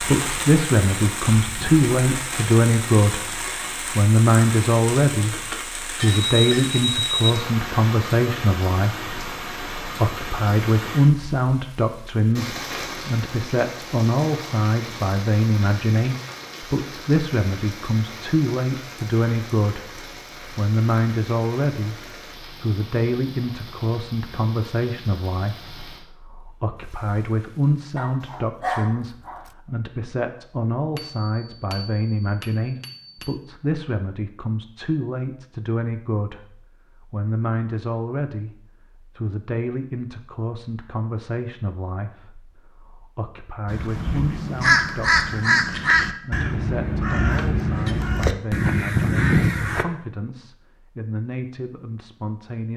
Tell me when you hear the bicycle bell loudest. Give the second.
7 s.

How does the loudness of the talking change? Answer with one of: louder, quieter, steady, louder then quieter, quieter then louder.
quieter.